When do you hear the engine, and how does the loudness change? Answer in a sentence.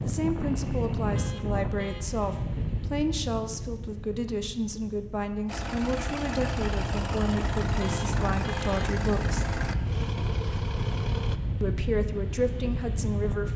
You can hear the engine from 5.5 to 11.4 s, at a steady volume.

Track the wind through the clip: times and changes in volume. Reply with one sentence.
The wind can be heard from 0.0 to 13.5 s, getting quieter then louder.